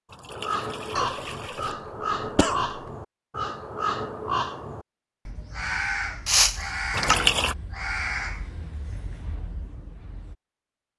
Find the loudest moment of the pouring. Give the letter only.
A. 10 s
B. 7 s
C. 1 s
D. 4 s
B.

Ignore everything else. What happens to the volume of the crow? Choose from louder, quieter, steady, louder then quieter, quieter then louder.
quieter.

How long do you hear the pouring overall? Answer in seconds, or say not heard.
2 s.